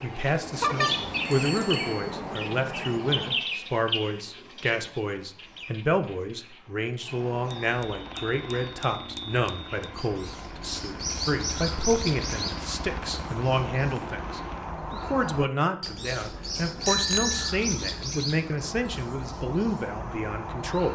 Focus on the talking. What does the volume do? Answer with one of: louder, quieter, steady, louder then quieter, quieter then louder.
steady.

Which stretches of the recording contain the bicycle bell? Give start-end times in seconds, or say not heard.
0.6-2.0, 7.5-9.9, 16.9-17.5.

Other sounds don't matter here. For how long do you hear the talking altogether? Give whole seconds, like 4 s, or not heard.
21 s.